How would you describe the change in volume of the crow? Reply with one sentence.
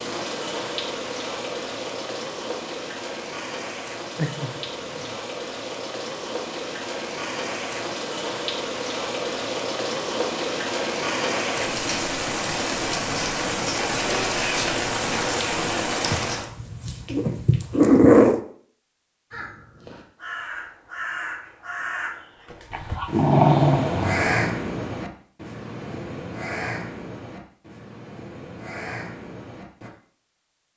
The volume of the crow goes up, then down.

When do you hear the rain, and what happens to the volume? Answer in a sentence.
The rain can be heard from 0.0 to 16.5 s, getting louder.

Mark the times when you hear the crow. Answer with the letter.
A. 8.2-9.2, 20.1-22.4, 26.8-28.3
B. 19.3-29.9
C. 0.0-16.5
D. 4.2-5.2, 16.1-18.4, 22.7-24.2
B.